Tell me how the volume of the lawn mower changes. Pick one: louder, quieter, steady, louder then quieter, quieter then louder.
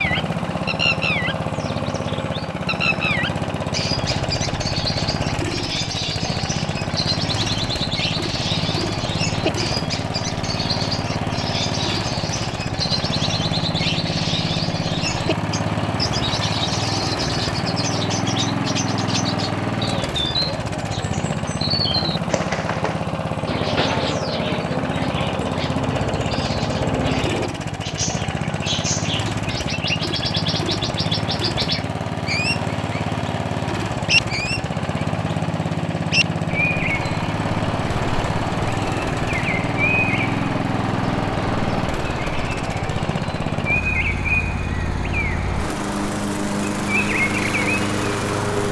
steady.